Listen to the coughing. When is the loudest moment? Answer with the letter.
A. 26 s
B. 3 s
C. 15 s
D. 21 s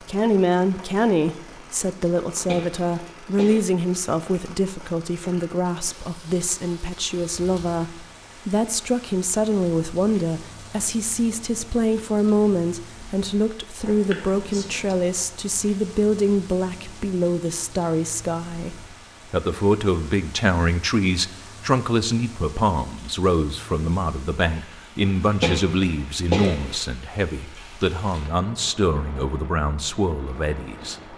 A.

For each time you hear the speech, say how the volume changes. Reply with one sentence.
The speech can be heard from 0.1 to 31.1 s, at a steady volume.